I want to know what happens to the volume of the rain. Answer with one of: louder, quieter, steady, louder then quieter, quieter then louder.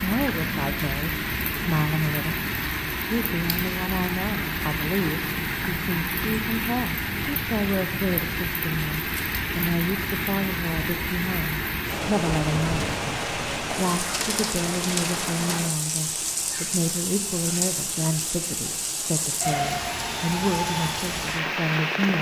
steady.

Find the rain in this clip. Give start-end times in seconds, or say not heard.
0.0-22.1.